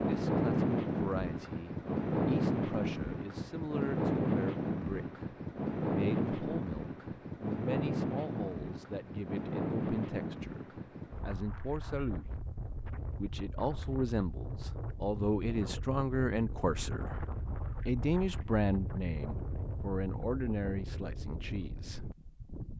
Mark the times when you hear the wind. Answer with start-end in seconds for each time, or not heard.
0.0-22.7.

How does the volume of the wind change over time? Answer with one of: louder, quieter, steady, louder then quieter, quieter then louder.
quieter.